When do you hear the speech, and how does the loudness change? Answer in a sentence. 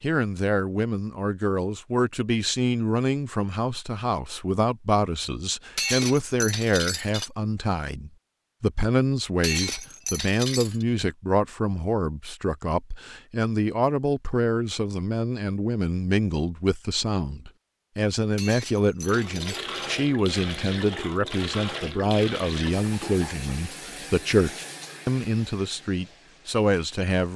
You can hear the speech from 0.0 to 27.3 s, at a steady volume.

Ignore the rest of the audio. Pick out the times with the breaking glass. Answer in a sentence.
The breaking glass can be heard from 5.8 to 7.3 s, from 9.4 to 10.8 s and from 18.4 to 19.6 s.